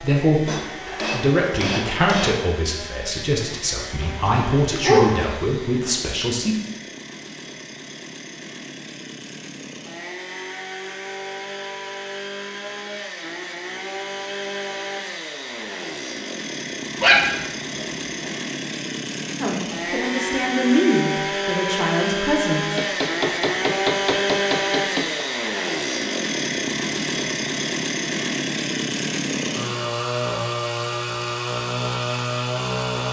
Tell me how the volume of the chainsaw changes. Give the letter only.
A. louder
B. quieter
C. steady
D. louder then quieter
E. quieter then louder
A.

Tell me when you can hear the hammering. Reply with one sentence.
You can hear the hammering from 0.5 to 2.5 s and from 22.8 to 25.2 s.